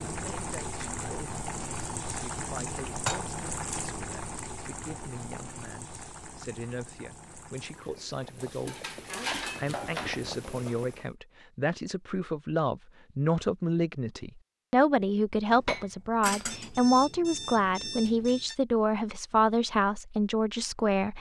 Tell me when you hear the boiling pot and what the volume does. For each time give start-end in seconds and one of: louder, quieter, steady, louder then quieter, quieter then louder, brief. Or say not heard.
0.0-11.1 quieter then louder.